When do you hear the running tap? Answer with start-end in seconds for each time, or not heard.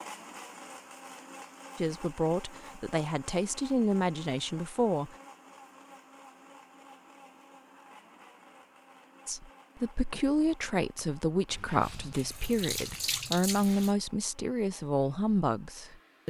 11.5-13.9.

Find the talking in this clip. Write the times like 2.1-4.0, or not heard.
1.8-5.2, 9.2-16.2.